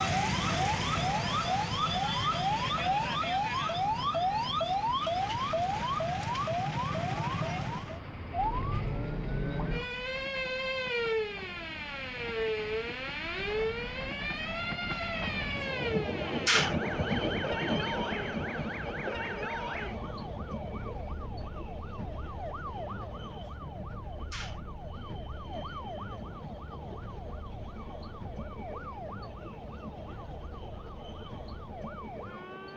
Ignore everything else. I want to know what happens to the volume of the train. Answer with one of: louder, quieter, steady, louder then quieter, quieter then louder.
louder then quieter.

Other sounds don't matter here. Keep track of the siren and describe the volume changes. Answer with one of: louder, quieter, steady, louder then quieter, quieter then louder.
quieter.